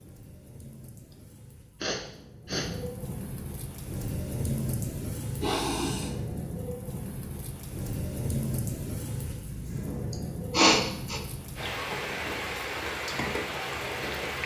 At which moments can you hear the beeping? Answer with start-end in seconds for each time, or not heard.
not heard.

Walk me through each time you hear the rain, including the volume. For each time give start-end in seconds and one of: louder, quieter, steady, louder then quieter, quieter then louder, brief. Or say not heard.
0.0-14.4 louder.